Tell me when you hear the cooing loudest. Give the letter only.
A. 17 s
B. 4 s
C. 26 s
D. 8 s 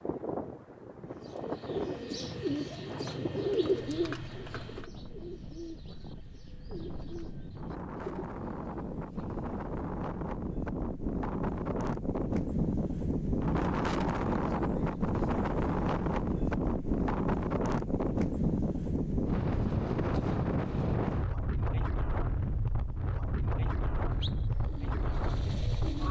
B.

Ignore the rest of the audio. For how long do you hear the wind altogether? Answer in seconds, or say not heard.
26 s.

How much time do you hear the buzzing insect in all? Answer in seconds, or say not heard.
not heard.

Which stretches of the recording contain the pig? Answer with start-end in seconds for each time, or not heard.
not heard.